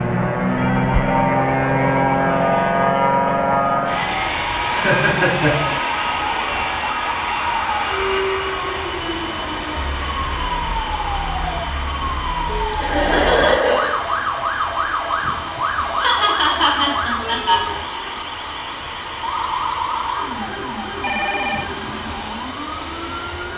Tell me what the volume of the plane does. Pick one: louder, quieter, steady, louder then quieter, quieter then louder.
quieter.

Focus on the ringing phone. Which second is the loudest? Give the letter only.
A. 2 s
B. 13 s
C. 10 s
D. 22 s
B.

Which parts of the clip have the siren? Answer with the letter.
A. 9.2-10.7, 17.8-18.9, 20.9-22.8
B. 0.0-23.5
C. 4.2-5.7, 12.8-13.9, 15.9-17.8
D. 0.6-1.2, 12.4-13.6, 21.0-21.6
B.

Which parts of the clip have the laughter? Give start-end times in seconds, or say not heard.
4.2-5.7, 12.8-13.9, 15.9-17.8.